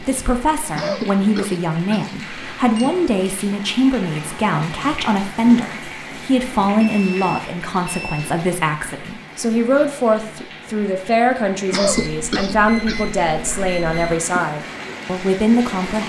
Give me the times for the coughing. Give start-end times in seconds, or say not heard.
0.8-2.1, 11.7-13.0.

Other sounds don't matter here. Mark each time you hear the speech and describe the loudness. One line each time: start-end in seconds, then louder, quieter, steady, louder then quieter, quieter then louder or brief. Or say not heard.
0.0-16.0 steady.